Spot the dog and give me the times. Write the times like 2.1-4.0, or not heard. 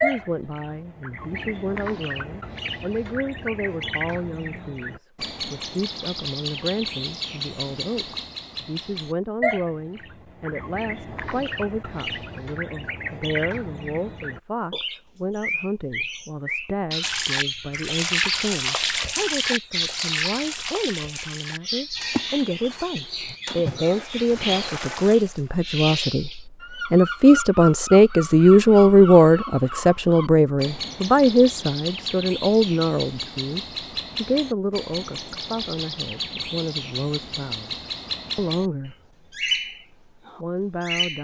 not heard.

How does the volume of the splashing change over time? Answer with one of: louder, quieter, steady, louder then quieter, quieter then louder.
quieter.